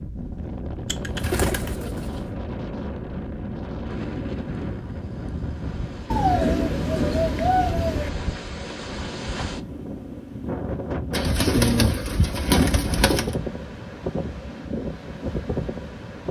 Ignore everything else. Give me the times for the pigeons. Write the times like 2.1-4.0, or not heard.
0.8-2.2, 6.1-8.1, 11.1-13.3.